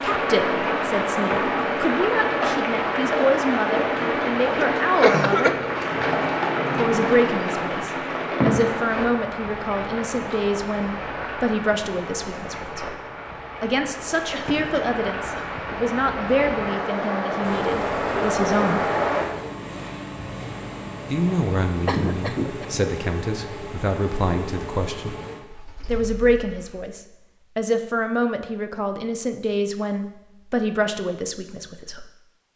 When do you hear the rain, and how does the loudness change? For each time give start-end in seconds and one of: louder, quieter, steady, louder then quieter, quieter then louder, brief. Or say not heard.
0.0-19.3 quieter then louder.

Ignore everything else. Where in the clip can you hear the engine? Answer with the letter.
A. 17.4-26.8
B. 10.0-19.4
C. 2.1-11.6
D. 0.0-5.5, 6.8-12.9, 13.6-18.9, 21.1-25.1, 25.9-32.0
A.